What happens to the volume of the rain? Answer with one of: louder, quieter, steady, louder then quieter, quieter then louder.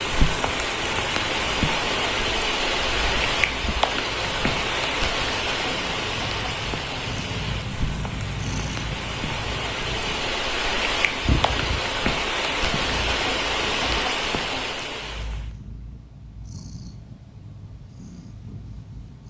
quieter then louder.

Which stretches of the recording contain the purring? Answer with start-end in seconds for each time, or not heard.
0.0-19.2.